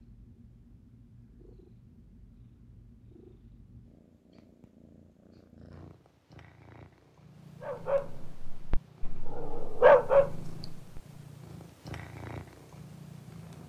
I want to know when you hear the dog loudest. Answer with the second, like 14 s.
10 s.